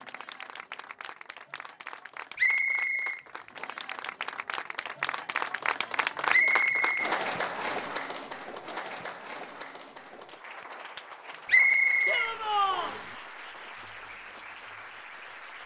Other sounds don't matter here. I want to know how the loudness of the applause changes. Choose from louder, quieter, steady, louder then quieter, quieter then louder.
louder then quieter.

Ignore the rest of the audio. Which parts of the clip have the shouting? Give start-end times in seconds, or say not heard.
12.1-12.9.